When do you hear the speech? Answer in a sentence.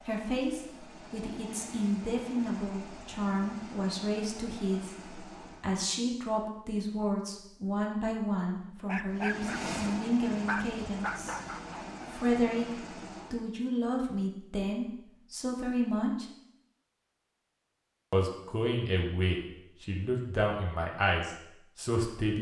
The speech can be heard from 0.1 to 11.4 s, from 12.1 to 16.2 s and from 18.1 to 22.3 s.